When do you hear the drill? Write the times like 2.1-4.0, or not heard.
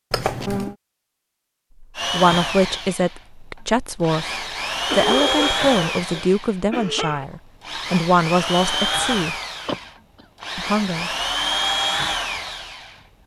1.9-13.0.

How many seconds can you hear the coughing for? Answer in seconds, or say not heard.
4 s.